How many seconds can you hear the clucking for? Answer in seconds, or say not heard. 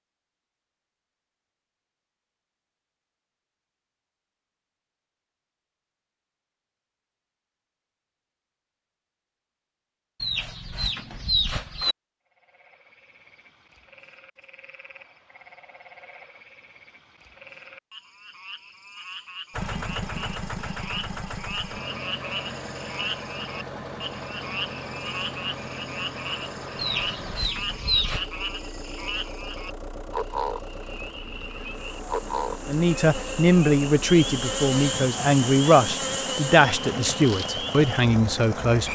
3 s.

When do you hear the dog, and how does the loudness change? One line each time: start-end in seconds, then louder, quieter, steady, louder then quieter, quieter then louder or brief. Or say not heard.
not heard.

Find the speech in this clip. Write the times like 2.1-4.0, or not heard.
32.6-38.8.